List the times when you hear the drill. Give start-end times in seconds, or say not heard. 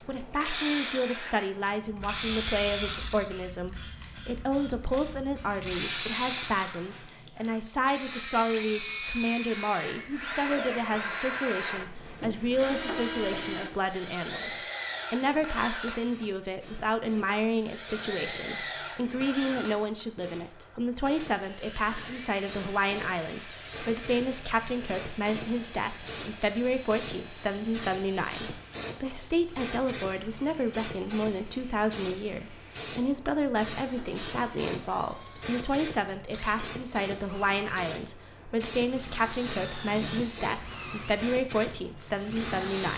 0.0-42.9.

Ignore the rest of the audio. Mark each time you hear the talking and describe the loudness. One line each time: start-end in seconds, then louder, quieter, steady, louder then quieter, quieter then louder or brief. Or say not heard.
0.1-42.9 steady.